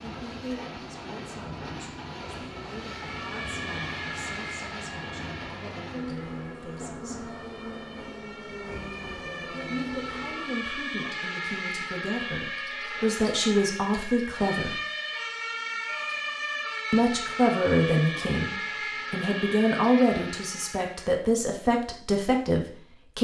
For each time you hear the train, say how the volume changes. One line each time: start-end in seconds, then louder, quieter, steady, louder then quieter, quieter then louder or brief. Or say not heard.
0.0-10.8 steady.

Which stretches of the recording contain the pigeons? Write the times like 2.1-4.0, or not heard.
not heard.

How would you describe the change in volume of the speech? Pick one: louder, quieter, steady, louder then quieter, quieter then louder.
louder.